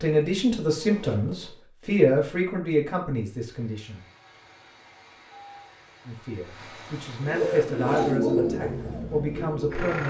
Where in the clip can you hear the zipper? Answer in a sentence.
You can hear the zipper from 0.1 to 1.6 s and from 6.6 to 8.2 s.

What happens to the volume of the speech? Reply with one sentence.
The volume of the speech goes down, then up.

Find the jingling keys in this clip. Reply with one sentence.
You can't hear the jingling keys here.